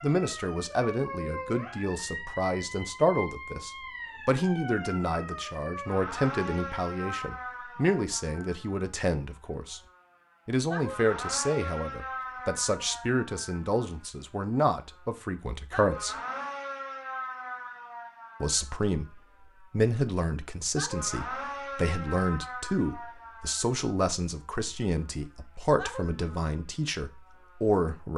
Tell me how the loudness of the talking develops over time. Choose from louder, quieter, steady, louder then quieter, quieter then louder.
steady.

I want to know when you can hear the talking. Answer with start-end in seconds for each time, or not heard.
0.0-9.8, 10.4-16.1, 18.4-28.1.